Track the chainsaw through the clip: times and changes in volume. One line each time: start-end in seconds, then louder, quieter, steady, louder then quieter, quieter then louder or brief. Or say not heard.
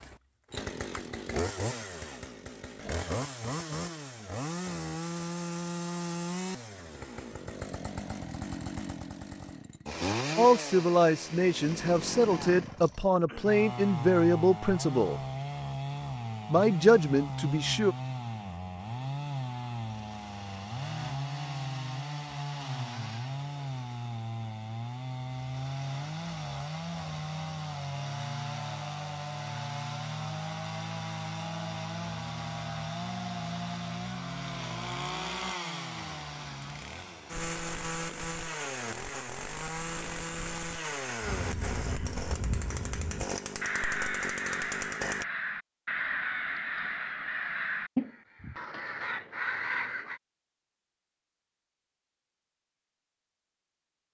0.0-45.2 steady.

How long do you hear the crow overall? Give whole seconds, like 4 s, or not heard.
9 s.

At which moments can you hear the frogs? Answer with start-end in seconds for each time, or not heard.
not heard.